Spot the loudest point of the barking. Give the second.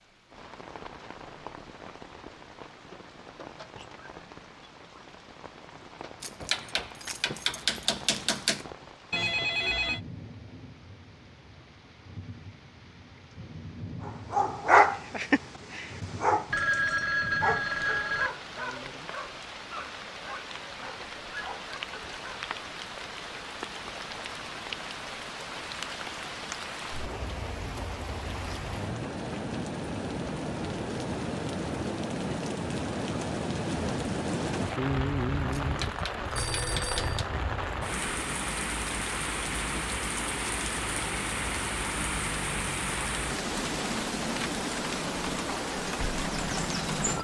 15 s.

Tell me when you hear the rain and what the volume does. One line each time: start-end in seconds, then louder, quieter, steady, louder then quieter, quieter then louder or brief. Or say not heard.
0.0-47.1 louder.